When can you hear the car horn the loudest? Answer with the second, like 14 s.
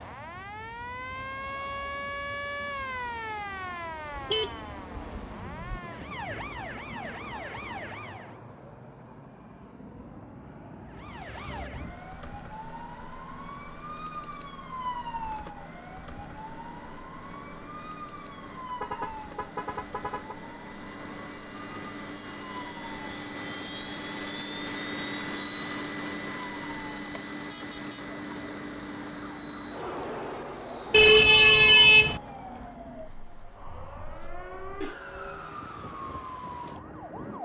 32 s.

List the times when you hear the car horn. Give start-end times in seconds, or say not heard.
4.2-5.8, 18.6-20.4, 30.9-32.2.